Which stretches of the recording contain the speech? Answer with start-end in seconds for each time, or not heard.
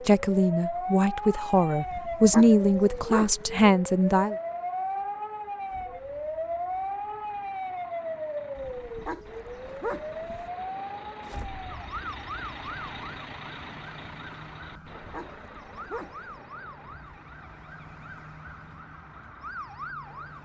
0.1-4.3.